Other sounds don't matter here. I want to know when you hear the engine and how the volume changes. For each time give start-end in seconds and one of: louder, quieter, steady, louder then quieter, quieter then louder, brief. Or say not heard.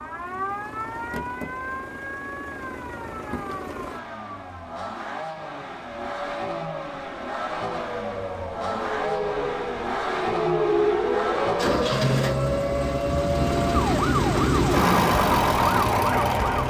0.0-16.6 louder.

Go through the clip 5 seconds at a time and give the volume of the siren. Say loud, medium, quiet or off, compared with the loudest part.
medium, medium, loud, loud.